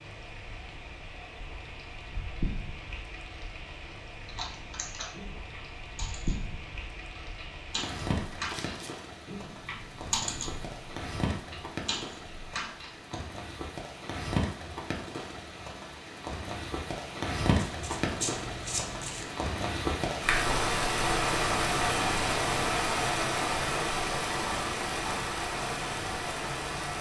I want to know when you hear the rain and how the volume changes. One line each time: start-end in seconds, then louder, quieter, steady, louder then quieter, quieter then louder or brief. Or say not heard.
0.0-26.9 louder.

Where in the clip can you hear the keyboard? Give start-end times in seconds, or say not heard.
4.2-13.2.